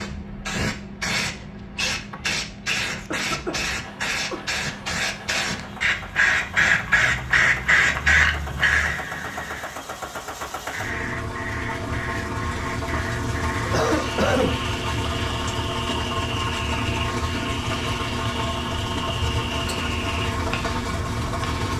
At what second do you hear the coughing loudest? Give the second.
14 s.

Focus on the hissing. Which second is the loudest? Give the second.
8 s.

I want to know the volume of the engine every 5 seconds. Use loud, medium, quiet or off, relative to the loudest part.
quiet, medium, loud, loud, loud.